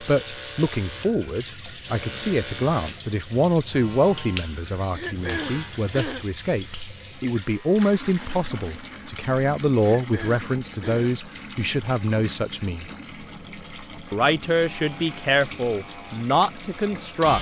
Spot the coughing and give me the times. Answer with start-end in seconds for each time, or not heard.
4.9-6.3, 9.8-11.2.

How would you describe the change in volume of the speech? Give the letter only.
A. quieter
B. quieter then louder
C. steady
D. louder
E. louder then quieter
C.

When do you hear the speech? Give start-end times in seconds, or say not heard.
0.0-12.8, 14.1-17.3.